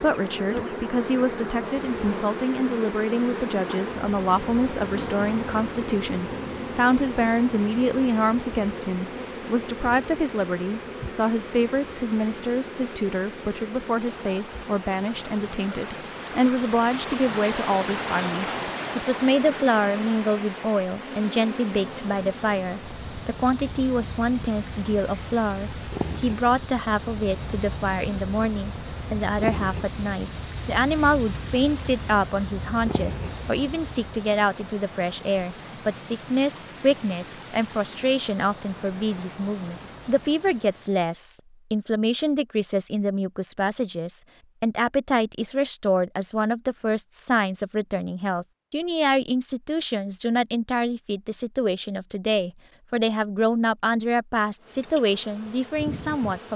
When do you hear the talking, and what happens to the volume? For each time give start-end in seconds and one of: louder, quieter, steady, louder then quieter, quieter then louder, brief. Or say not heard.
0.0-56.5 steady.